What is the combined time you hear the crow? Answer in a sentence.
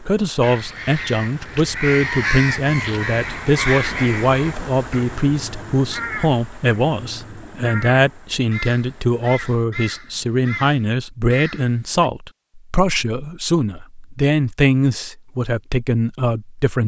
You can hear the crow for 12 seconds altogether.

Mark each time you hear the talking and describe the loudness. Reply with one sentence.
You can hear the talking from 0.0 to 16.8 s, at a steady volume.